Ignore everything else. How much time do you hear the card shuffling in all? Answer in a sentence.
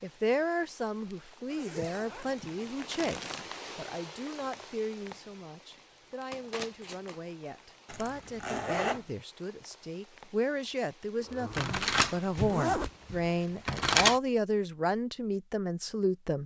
The card shuffling can be heard for 5 seconds in total.